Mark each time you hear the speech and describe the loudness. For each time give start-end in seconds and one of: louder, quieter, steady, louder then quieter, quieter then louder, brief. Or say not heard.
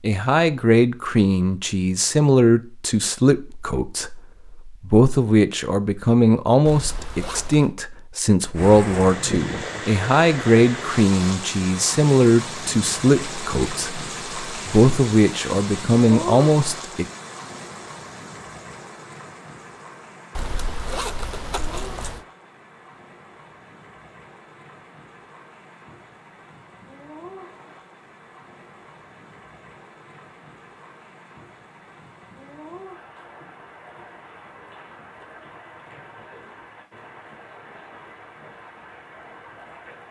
0.0-17.1 steady.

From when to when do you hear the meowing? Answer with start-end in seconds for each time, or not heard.
not heard.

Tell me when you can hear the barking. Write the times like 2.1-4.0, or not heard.
not heard.